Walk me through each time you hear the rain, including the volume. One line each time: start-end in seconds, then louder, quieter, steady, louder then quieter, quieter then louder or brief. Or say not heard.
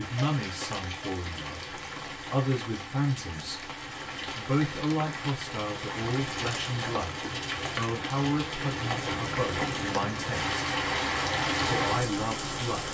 0.0-12.9 louder.